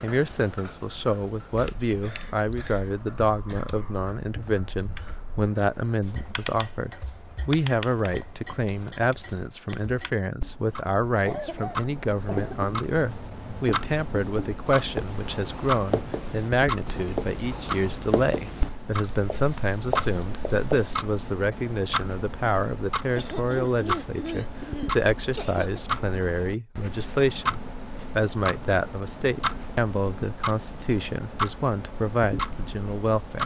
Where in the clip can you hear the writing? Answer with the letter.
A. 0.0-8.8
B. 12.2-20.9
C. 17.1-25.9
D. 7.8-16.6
B.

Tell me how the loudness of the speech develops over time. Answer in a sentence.
The loudness of the speech stays about the same.